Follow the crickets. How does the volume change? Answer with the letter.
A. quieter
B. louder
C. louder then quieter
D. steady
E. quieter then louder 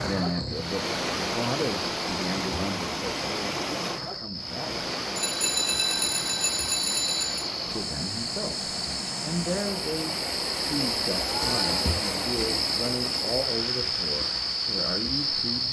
B.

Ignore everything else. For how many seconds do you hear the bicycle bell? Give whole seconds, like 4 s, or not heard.
2 s.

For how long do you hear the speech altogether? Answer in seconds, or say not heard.
13 s.